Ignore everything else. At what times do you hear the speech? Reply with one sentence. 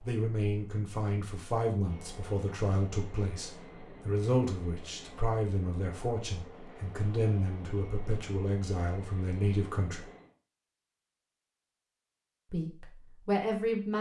The speech can be heard from 0.0 to 10.1 s and from 12.5 to 13.9 s.